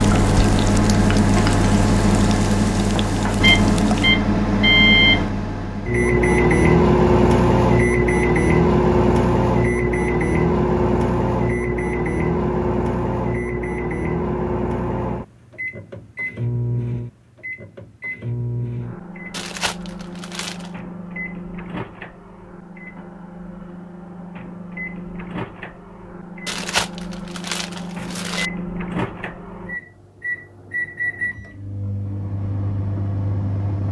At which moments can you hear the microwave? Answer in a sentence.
The microwave can be heard from 0.0 to 33.8 s.